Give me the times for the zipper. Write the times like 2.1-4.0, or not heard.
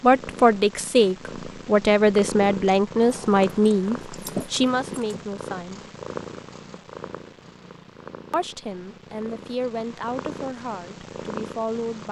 not heard.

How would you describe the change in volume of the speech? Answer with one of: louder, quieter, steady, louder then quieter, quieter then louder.
quieter.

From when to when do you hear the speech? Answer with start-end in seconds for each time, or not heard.
0.0-5.8, 8.3-12.0.